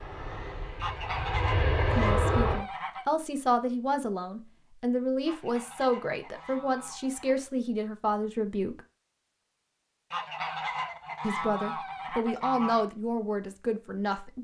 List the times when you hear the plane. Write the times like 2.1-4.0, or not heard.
0.0-2.6.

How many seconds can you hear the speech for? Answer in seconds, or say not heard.
10 s.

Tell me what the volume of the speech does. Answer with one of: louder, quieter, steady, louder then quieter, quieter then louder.
steady.